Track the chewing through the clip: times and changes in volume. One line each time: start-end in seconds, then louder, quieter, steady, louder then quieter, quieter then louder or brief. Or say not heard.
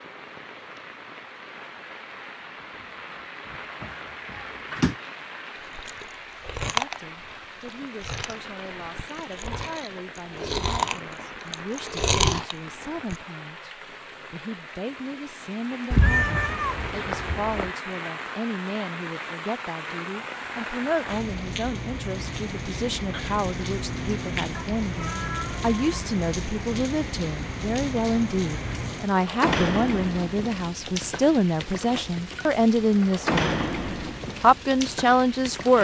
5.8-13.2 quieter then louder.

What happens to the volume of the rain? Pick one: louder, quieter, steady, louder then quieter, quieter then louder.
louder.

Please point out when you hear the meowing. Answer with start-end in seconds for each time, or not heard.
3.8-5.0, 15.9-17.7, 24.6-25.8.